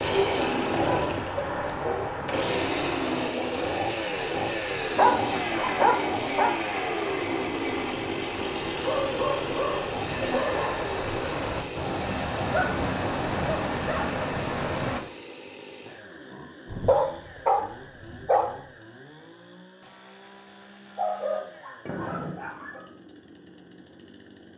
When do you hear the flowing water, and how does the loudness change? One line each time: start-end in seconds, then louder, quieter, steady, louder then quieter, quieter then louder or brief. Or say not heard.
0.0-15.0 quieter then louder.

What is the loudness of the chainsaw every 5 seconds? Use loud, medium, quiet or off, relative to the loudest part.
loud, loud, medium, quiet, quiet.